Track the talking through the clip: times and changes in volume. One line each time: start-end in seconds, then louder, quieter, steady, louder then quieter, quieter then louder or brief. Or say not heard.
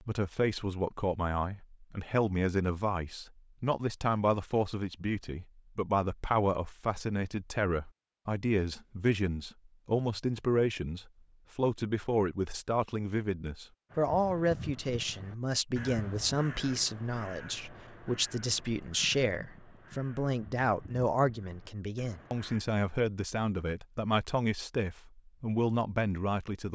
0.0-26.7 steady.